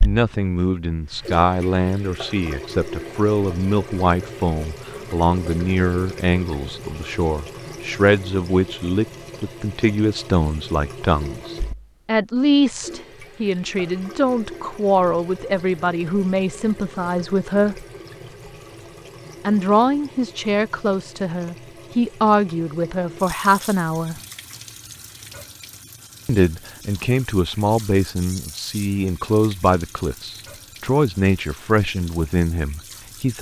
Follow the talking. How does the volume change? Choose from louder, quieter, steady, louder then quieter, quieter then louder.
steady.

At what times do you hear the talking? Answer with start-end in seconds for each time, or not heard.
0.0-17.9, 19.4-24.1, 26.2-33.3.